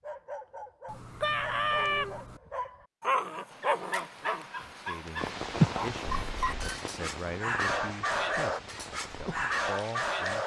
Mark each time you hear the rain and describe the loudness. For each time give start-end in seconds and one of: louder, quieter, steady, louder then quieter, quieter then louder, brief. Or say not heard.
3.5-10.4 louder then quieter.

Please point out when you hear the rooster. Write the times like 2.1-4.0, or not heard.
1.2-2.5.